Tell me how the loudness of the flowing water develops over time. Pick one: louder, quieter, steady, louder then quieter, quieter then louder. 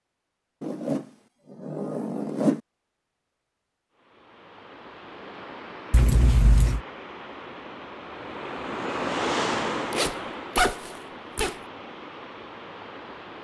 louder then quieter.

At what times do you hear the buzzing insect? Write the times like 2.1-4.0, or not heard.
not heard.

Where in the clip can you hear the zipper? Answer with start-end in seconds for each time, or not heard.
0.6-2.6, 5.9-6.8, 9.9-11.6.